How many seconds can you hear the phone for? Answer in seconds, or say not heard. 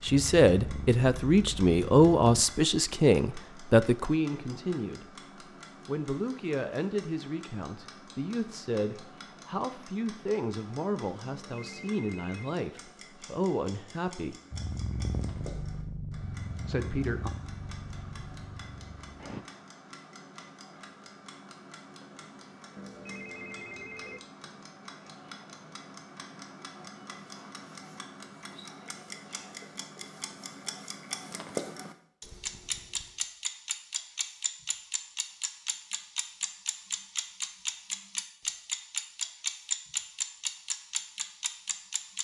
3 s.